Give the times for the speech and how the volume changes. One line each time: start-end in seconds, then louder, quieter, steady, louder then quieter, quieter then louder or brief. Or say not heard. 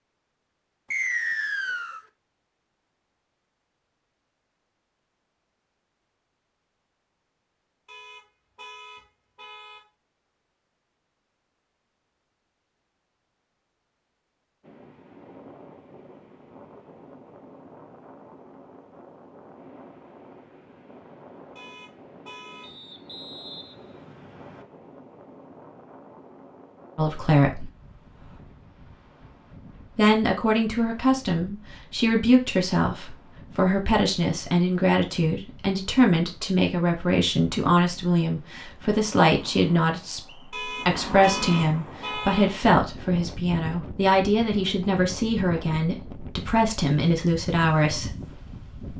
26.9-27.7 brief
29.9-48.1 steady.